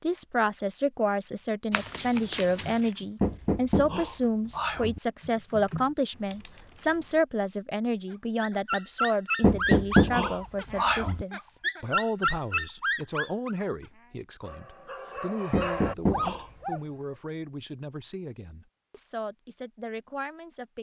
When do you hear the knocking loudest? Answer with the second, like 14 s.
10 s.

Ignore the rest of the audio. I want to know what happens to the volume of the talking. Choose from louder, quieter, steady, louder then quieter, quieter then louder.
quieter.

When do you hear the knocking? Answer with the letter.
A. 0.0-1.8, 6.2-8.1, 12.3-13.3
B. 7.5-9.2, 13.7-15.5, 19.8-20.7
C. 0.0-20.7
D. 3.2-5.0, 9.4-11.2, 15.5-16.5
D.